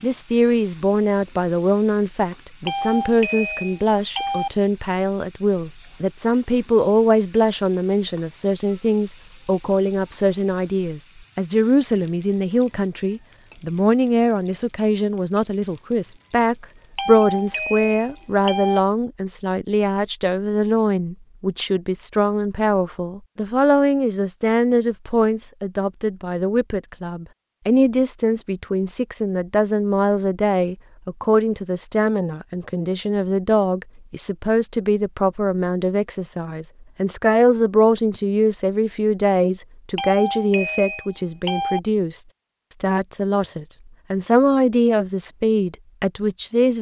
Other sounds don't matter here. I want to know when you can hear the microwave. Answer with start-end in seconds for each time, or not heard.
not heard.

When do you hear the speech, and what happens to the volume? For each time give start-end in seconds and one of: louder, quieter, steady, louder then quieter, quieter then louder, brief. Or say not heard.
0.0-46.7 steady.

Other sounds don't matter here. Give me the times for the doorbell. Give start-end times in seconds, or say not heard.
2.6-4.5, 16.9-18.8, 40.0-41.8.